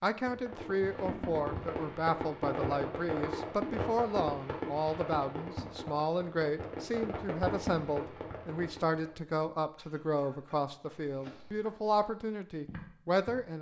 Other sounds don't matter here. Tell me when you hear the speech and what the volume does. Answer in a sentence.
You can hear the speech from 0.0 to 13.5 s, at a steady volume.